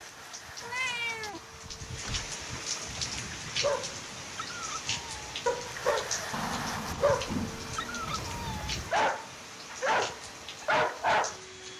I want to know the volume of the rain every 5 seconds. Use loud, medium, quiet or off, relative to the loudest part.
loud, loud, medium.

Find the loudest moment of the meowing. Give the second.
1 s.